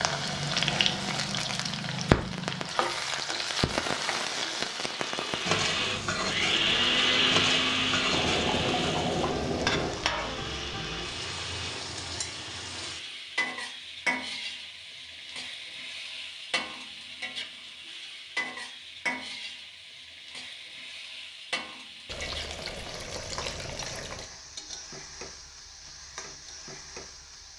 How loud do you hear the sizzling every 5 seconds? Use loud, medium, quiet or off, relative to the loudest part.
loud, loud, medium, medium, quiet, quiet.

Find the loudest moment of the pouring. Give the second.
9 s.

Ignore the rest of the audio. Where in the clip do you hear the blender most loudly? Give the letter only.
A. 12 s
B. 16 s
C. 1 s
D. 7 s
D.